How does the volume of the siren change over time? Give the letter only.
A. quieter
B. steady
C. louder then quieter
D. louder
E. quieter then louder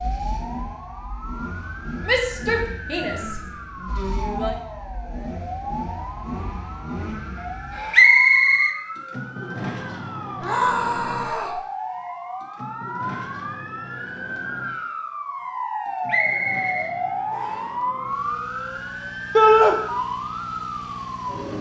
D.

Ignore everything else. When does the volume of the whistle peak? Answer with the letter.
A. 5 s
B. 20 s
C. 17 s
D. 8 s
D.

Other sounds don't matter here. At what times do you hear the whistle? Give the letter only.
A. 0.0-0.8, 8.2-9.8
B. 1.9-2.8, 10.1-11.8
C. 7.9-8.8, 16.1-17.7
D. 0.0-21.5
C.